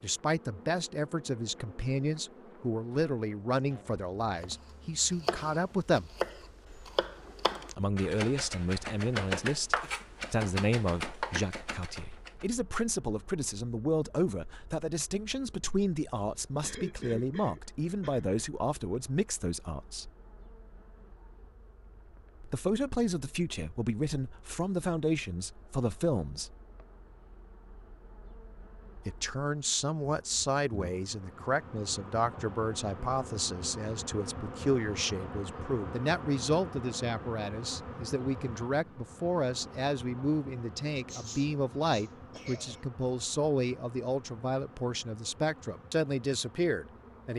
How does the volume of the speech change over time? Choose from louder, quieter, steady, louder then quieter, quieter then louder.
steady.